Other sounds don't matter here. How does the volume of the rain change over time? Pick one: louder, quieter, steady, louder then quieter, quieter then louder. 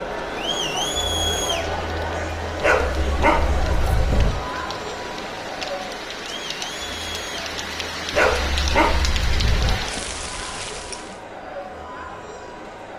louder.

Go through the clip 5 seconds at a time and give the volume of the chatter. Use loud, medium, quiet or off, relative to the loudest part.
loud, medium, medium.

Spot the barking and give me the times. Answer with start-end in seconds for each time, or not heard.
2.6-4.3, 8.1-9.8.